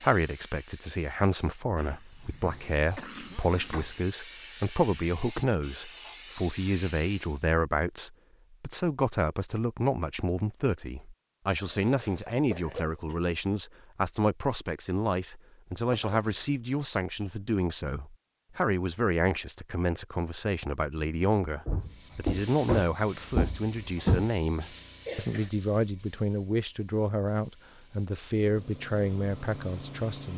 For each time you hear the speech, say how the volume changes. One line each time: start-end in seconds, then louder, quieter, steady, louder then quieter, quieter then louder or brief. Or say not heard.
0.0-30.3 steady.